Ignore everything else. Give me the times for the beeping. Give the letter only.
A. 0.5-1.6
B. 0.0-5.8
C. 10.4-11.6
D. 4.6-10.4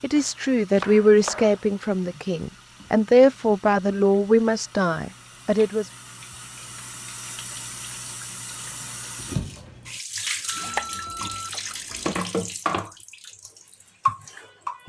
C.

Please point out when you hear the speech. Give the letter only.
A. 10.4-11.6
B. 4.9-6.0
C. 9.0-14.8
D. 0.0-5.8
D.